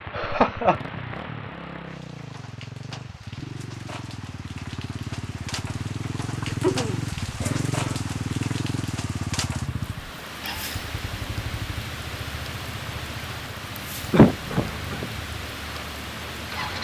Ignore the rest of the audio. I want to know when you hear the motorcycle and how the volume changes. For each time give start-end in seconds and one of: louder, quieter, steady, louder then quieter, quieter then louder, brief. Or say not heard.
0.0-16.7 louder then quieter.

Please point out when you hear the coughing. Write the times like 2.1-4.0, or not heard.
0.1-0.8, 6.4-8.0, 14.1-15.1.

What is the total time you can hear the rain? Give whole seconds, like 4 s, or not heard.
17 s.